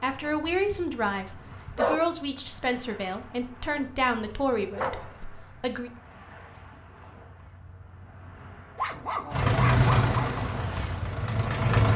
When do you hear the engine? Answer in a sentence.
You can hear the engine from 9.3 to 11.9 s.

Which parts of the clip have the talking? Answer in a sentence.
The talking can be heard from 0.0 to 5.9 s.